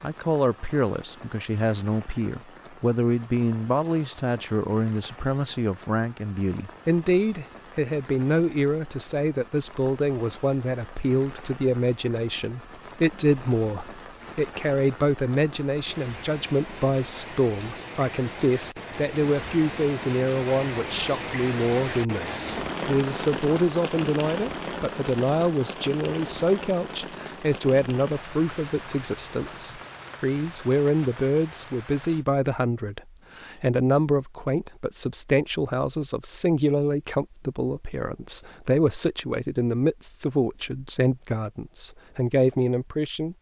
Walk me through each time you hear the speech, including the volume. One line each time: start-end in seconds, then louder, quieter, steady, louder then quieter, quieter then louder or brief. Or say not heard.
0.0-43.3 steady.